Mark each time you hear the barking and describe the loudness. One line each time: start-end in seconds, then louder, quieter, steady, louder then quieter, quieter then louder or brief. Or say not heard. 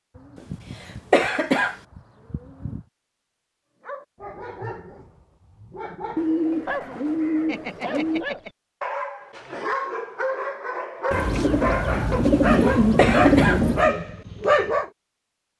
3.8-14.9 louder.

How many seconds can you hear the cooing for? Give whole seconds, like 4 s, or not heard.
8 s.